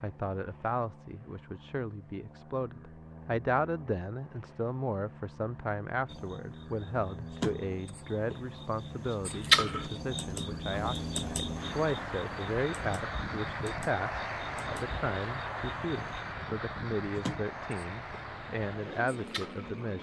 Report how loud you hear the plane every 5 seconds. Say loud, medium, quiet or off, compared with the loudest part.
quiet, medium, loud, loud.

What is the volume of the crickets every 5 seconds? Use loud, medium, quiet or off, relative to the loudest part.
off, loud, medium, quiet.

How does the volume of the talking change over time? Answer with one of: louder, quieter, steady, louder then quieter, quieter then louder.
steady.